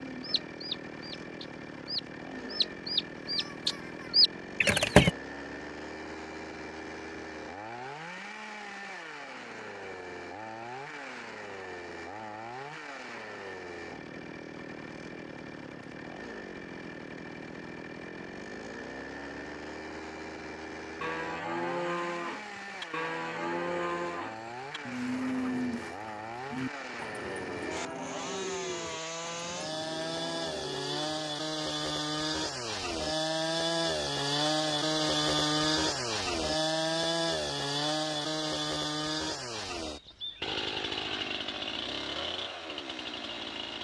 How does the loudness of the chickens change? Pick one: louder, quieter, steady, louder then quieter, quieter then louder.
louder.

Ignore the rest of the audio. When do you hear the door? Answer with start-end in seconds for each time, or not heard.
not heard.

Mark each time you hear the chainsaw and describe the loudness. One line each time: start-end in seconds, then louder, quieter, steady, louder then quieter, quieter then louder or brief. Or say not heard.
0.0-43.7 louder.